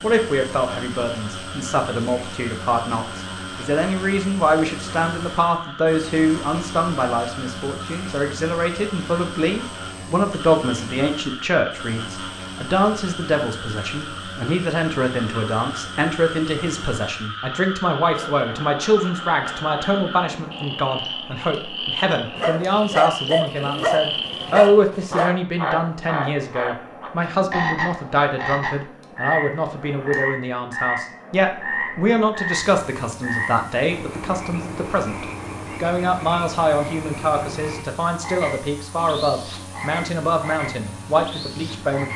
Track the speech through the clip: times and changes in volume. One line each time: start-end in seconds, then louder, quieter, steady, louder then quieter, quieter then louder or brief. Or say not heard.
0.0-42.1 steady.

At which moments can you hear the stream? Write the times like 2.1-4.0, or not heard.
not heard.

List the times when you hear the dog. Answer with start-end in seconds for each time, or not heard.
22.4-25.3.